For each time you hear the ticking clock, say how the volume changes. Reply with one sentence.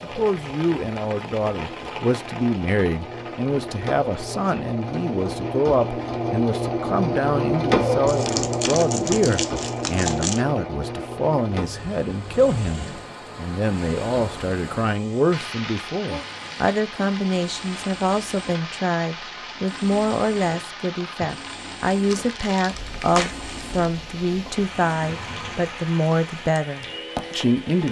You can't hear the ticking clock here.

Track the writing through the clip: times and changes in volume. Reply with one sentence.
You can't hear the writing here.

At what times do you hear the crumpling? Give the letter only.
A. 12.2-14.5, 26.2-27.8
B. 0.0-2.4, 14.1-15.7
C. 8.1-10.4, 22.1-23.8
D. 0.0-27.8
C.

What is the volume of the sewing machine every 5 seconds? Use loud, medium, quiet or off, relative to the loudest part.
medium, loud, medium, quiet, quiet, quiet.